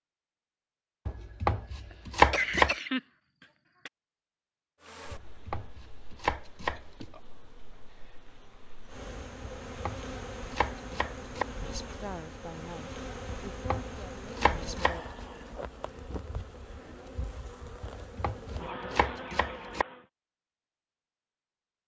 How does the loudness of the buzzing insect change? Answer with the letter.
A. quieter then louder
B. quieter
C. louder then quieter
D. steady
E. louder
E.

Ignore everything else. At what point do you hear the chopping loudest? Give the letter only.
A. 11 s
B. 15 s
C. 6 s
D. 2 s
D.